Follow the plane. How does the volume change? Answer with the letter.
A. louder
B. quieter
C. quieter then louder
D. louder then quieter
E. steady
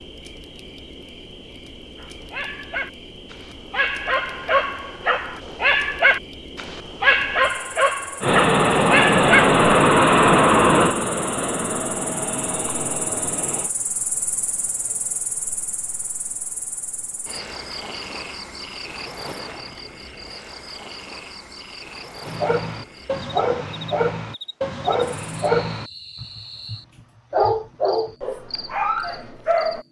B.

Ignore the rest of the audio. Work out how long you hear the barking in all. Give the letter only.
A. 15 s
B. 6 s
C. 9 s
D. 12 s
A.